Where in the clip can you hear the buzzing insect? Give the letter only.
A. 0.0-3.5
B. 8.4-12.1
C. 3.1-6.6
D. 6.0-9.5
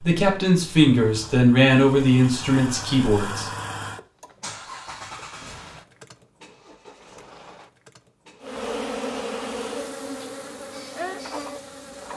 B.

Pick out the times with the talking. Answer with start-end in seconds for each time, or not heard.
0.0-3.5.